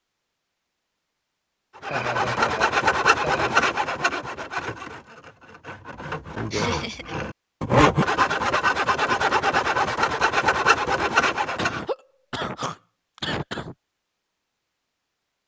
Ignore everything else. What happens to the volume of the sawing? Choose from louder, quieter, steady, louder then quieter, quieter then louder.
quieter then louder.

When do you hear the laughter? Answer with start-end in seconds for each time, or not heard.
1.9-3.6, 6.5-7.2, 11.6-13.8.